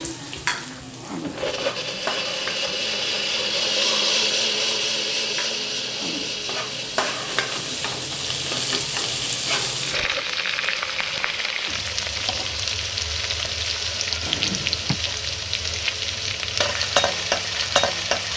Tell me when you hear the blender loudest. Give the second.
4 s.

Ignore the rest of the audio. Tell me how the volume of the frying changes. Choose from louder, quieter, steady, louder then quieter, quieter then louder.
louder.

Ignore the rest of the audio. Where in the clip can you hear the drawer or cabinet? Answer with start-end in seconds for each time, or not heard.
14.2-15.0.